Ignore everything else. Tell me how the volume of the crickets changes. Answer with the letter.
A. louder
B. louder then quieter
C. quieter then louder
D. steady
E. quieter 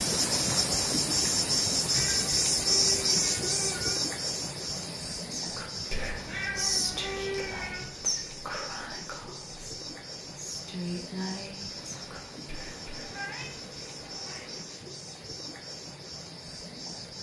E.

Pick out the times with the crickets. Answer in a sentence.
The crickets can be heard from 0.0 to 17.1 s.